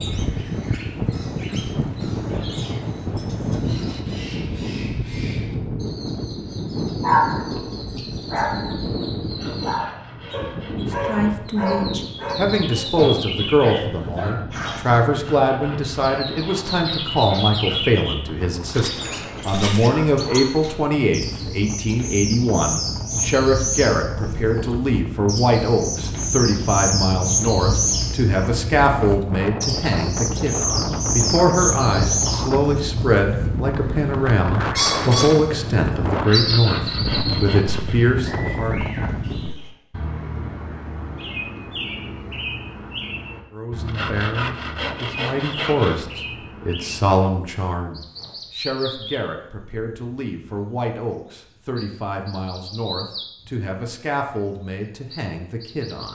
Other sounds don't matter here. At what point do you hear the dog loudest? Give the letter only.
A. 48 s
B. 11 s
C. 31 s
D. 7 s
D.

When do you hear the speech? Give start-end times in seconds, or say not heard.
11.1-38.8, 43.5-56.1.